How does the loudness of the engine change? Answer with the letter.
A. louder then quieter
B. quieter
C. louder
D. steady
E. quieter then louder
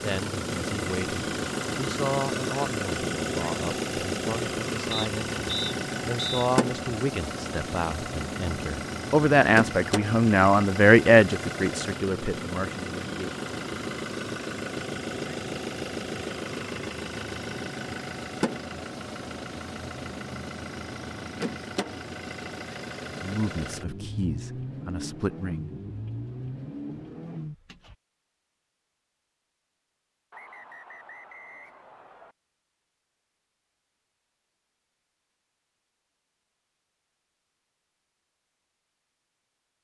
B.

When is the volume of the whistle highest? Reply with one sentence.
The loudest moment of the whistle is at 6 seconds.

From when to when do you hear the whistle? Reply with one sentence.
You can hear the whistle from 4.9 to 6.2 s and from 30.3 to 32.4 s.